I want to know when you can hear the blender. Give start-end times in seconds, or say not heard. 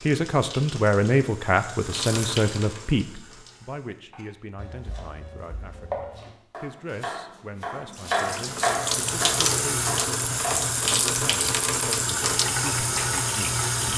not heard.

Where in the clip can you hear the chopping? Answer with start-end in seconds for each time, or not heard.
4.1-10.7.